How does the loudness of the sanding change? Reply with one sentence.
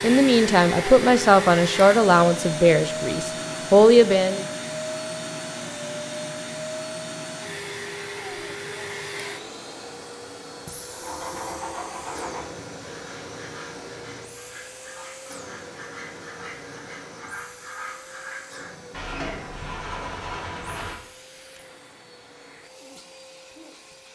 The loudness of the sanding goes down, then up.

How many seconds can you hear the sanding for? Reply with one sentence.
The sanding can be heard for 10 seconds in total.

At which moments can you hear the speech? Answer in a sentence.
You can hear the speech from 0.0 to 4.5 s.